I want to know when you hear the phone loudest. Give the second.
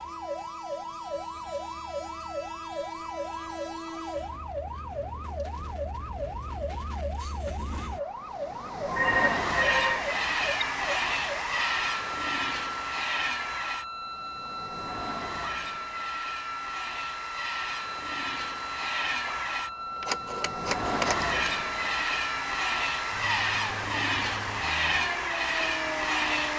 9 s.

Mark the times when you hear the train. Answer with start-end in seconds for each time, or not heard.
0.0-26.5.